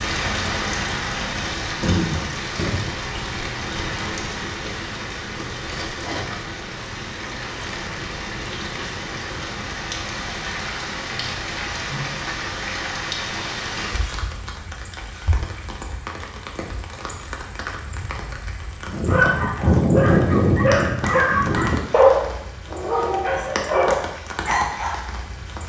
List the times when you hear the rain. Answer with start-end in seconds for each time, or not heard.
0.0-25.6.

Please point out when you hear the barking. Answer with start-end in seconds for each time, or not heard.
18.9-25.0.